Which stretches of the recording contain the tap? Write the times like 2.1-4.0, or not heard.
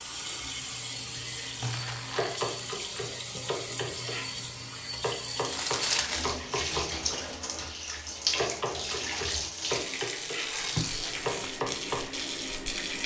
0.0-13.0.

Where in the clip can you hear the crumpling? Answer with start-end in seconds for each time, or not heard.
1.6-2.4, 5.5-6.4, 10.7-11.5.